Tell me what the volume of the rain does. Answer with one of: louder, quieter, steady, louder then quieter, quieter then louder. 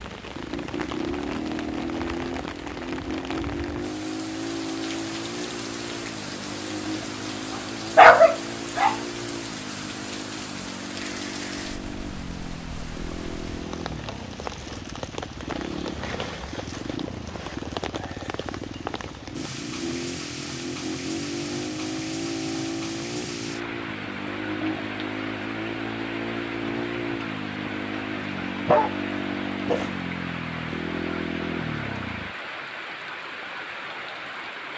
steady.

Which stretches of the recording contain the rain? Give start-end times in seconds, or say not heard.
0.0-34.7.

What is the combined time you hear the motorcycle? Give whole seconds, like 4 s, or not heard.
32 s.